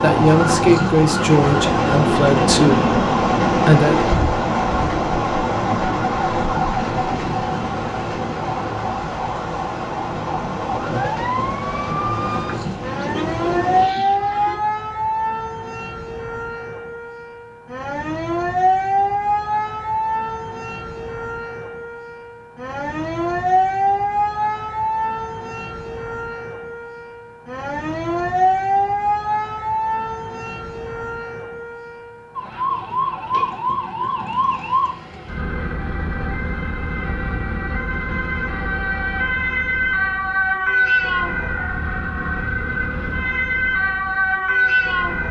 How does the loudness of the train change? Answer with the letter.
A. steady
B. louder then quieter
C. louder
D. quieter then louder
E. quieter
E.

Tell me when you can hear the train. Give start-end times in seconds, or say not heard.
0.0-13.9.